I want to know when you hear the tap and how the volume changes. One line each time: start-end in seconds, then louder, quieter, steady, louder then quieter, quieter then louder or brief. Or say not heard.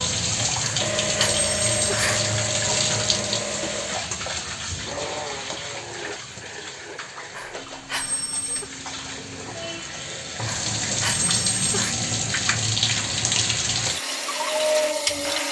0.0-15.4 quieter then louder.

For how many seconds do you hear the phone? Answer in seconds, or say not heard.
5 s.